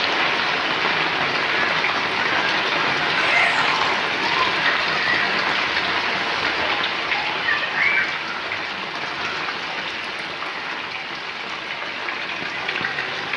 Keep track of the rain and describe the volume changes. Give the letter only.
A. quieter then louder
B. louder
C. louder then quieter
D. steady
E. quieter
E.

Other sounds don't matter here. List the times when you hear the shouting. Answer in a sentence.
You can hear the shouting from 3.1 to 4.0 s.